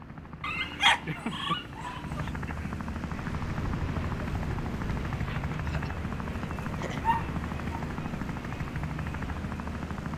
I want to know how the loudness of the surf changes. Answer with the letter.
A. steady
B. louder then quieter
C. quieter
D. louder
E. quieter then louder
C.